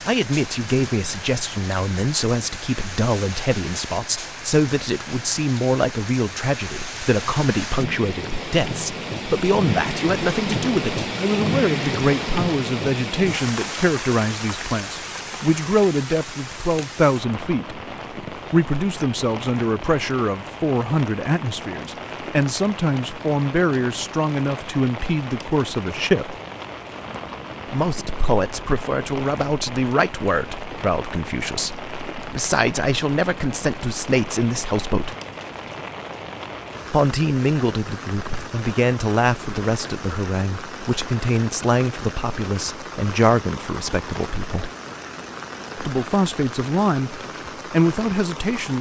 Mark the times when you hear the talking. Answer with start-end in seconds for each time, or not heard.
0.1-26.4, 27.7-35.1, 36.9-44.7, 45.8-48.7.